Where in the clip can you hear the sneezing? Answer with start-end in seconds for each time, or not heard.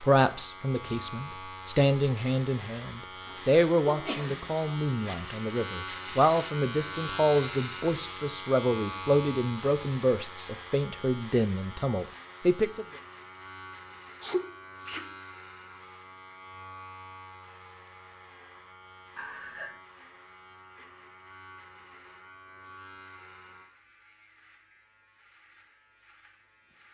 3.2-4.7, 14.2-15.1, 19.1-19.7.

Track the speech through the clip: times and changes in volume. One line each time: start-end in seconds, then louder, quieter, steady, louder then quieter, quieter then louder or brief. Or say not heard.
0.0-12.8 steady.